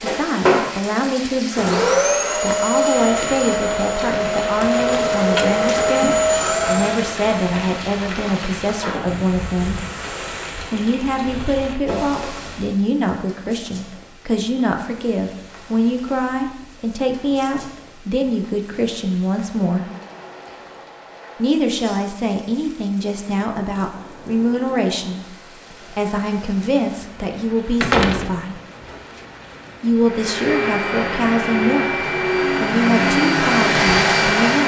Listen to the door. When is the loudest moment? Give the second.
28 s.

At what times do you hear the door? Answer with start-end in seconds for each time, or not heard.
4.9-5.7, 27.8-29.2.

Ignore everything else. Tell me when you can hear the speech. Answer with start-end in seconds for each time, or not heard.
0.0-9.8, 10.7-19.9, 21.4-25.2, 25.9-28.6, 29.8-34.6.